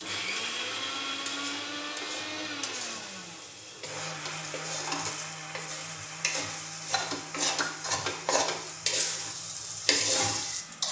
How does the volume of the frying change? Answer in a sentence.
The loudness of the frying goes up.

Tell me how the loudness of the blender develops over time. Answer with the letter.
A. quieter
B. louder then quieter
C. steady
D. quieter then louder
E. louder
A.